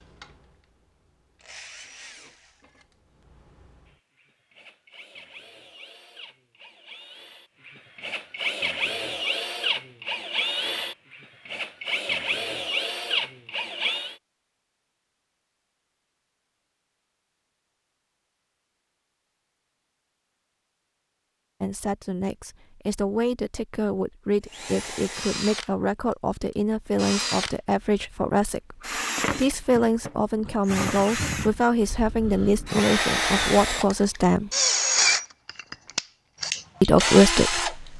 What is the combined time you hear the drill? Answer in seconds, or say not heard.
25 s.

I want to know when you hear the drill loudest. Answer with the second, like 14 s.
35 s.